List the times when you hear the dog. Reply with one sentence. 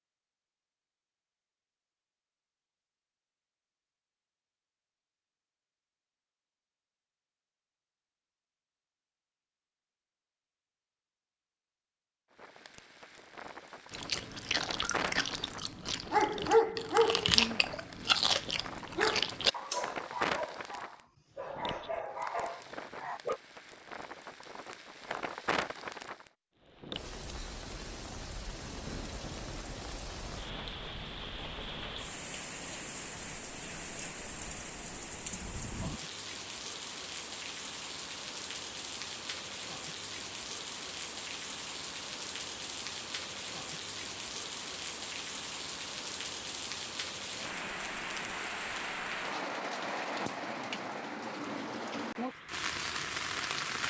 You can hear the dog from 16.1 to 23.4 s.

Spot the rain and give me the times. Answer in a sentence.
The rain can be heard from 12.3 to 53.8 s.